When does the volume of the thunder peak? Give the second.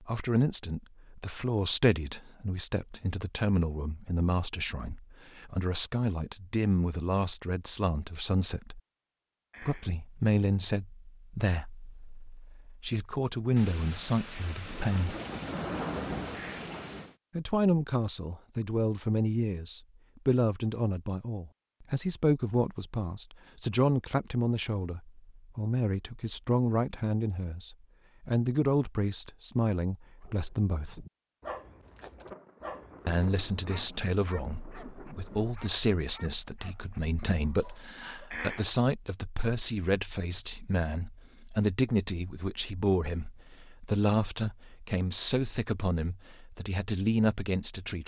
16 s.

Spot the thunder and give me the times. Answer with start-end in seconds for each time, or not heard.
13.6-17.1, 32.2-35.5.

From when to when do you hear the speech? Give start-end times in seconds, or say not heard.
0.0-8.8, 9.6-15.2, 17.4-31.1, 33.0-48.0.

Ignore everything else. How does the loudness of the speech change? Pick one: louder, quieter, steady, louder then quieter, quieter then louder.
steady.